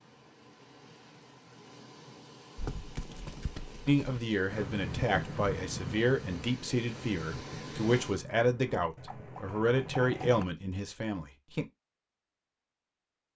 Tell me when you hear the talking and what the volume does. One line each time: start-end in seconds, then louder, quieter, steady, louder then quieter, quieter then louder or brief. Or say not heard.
3.9-11.7 steady.